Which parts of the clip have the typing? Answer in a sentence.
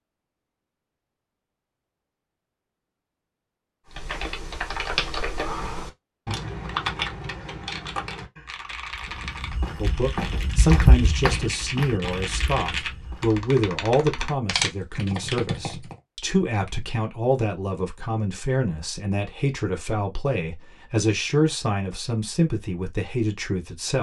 The typing can be heard from 3.9 to 15.9 s.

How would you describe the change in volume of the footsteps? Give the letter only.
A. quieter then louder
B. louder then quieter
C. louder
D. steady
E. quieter
B.